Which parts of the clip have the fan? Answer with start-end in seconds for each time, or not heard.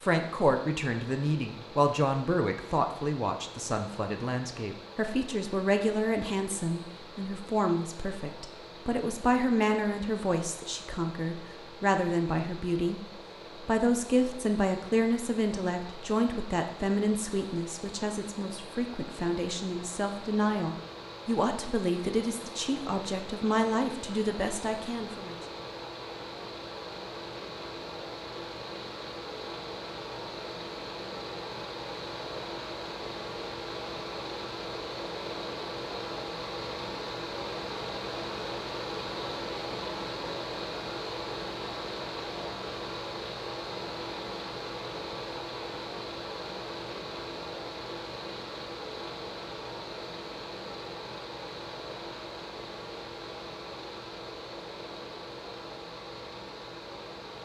0.0-57.4.